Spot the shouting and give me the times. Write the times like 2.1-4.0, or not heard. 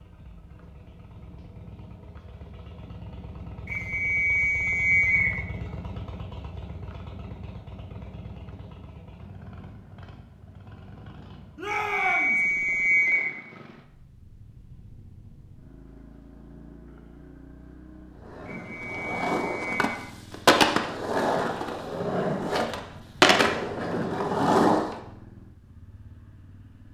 11.6-12.4.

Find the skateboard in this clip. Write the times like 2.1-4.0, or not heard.
18.2-24.9.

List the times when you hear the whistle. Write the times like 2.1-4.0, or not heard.
3.6-5.3, 11.7-13.2, 18.4-19.6.